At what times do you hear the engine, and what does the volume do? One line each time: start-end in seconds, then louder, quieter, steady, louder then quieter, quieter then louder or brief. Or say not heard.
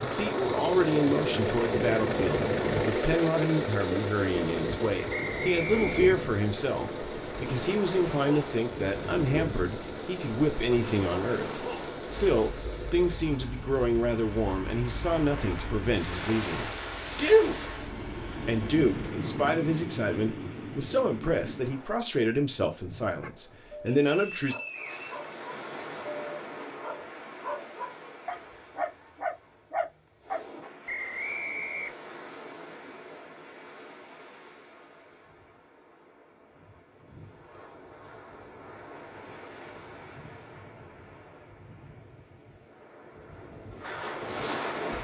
0.0-19.1 quieter.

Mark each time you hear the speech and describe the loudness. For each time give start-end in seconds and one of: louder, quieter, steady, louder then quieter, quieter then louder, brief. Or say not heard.
0.0-24.6 steady.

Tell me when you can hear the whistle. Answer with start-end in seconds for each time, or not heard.
5.1-6.0, 23.9-25.8, 30.9-31.9.